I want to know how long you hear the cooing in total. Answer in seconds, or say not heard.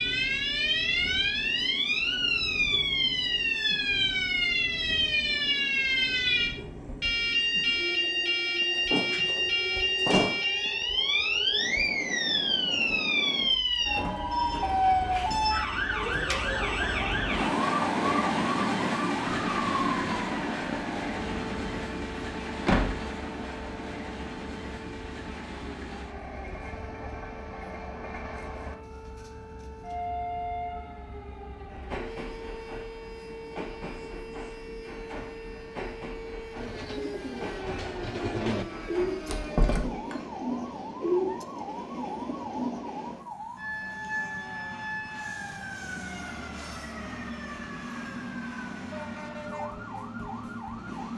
6 s.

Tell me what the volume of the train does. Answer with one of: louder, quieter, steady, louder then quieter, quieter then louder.
louder then quieter.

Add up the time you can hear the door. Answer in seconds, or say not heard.
3 s.